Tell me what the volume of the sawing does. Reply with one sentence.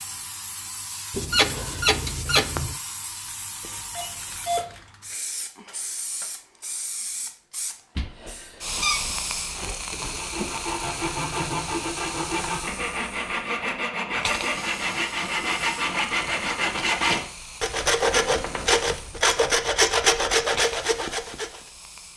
The volume of the sawing goes up.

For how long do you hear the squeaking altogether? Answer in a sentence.
You can hear the squeaking for 5 seconds altogether.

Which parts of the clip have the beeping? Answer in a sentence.
You can hear the beeping from 3.6 to 4.8 s.